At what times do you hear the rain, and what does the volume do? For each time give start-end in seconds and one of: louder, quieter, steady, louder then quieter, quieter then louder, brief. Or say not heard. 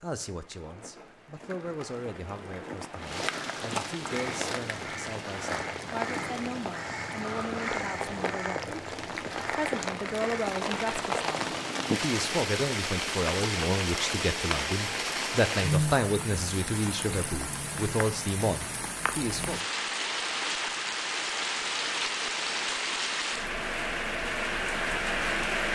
0.0-25.7 louder.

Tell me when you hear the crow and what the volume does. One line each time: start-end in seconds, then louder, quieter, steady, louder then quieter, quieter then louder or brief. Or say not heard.
4.2-11.2 steady.